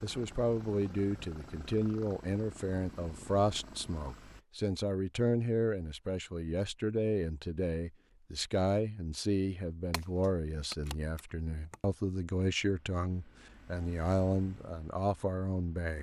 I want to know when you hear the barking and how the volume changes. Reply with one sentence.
The barking can't be heard in this clip.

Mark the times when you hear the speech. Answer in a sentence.
You can hear the speech from 0.0 to 15.9 s.